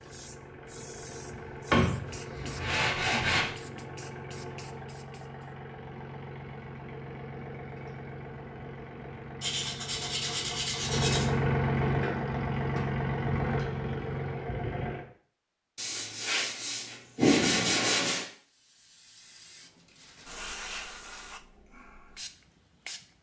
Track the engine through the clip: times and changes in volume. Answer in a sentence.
You can hear the engine from 0.0 to 15.1 s, getting louder.